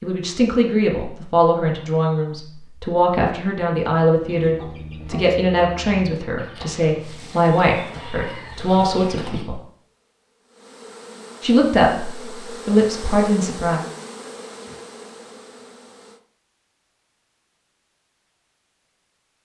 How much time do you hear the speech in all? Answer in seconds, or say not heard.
12 s.